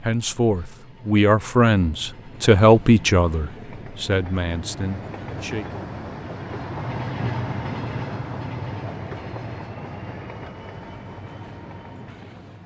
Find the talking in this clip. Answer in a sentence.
The talking can be heard from 0.0 to 5.8 s.